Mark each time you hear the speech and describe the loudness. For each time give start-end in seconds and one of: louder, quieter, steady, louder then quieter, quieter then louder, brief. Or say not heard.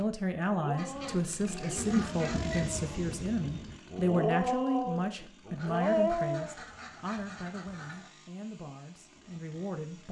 0.0-10.0 quieter.